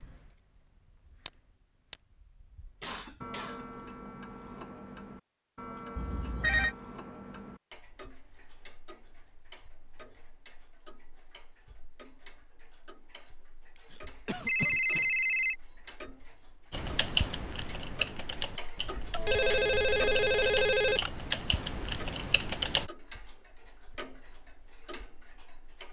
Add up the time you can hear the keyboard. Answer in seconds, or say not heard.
6 s.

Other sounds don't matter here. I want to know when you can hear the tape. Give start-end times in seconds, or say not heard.
not heard.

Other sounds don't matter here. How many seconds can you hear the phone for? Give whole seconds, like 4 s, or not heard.
4 s.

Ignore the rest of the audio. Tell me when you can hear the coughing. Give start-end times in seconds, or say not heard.
2.8-3.6, 13.9-15.1.